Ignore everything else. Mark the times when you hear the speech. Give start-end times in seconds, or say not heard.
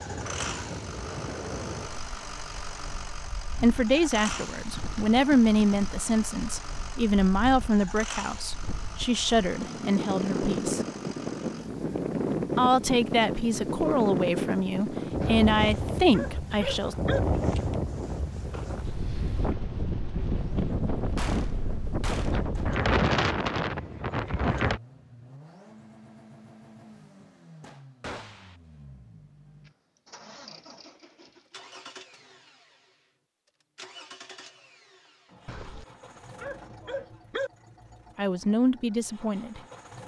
3.6-10.8, 12.6-16.9, 38.1-39.6.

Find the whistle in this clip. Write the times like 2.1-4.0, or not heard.
not heard.